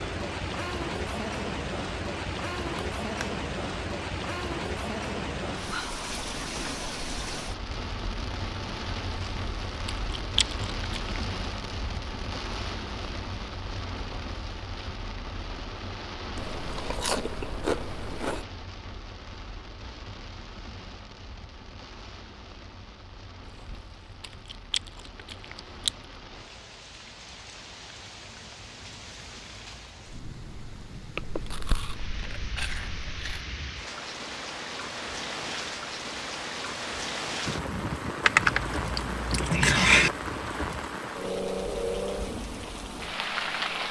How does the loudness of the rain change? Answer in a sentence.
The loudness of the rain goes down, then up.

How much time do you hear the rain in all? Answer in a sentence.
The rain can be heard for 44 seconds in total.